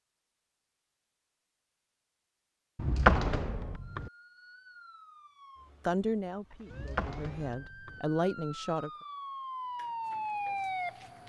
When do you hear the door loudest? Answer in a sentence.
The loudest moment of the door is at 3 seconds.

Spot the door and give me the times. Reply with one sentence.
The door can be heard from 2.8 to 4.1 s and from 6.7 to 8.0 s.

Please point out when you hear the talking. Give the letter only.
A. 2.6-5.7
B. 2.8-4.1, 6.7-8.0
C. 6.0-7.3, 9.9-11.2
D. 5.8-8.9
D.